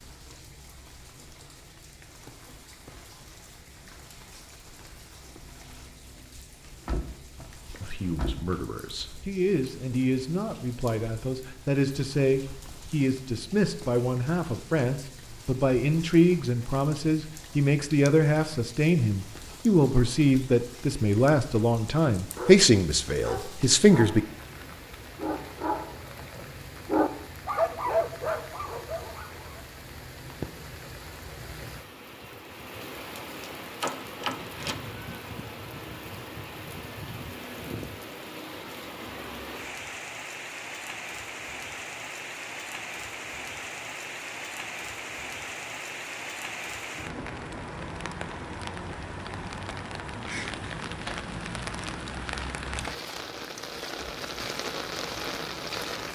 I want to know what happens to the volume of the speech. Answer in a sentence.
The volume of the speech goes up.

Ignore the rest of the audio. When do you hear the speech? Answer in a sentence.
The speech can be heard from 7.8 to 24.2 s.